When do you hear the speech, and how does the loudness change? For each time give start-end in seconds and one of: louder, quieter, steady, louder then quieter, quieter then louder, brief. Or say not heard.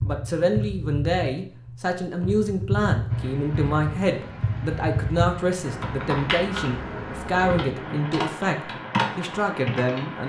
0.0-10.2 steady.